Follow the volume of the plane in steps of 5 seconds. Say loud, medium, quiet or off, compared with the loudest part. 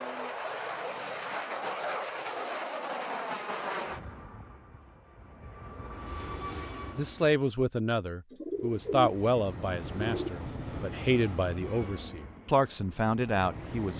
loud, medium, medium.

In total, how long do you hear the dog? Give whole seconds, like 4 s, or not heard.
not heard.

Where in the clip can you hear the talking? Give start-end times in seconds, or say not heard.
7.0-13.9.